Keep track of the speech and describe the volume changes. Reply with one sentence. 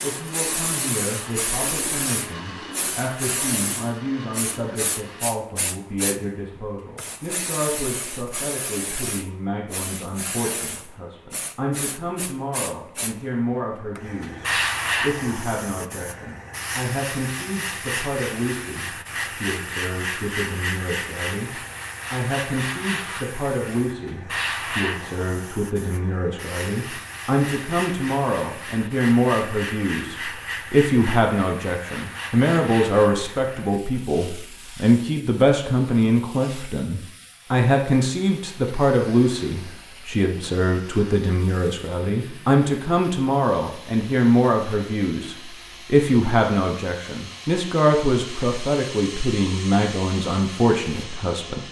The volume of the speech goes up.